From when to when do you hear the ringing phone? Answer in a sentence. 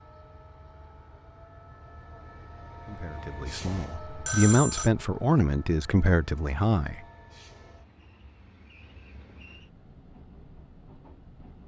You can hear the ringing phone from 3.6 to 4.9 s.